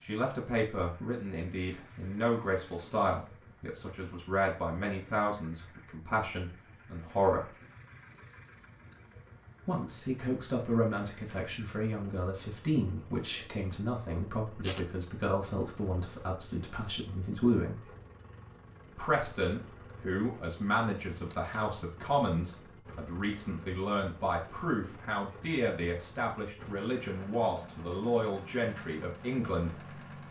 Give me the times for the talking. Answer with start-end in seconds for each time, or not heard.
0.0-7.5, 9.7-17.9, 18.9-29.9.